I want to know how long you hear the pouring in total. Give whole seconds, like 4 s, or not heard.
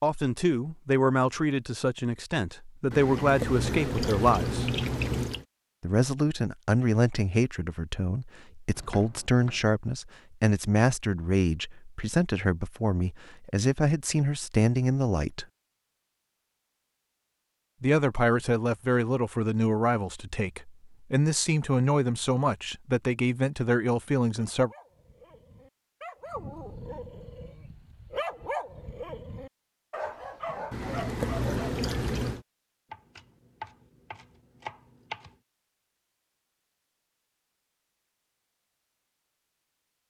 4 s.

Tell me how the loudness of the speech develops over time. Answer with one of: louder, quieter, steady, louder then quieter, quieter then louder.
steady.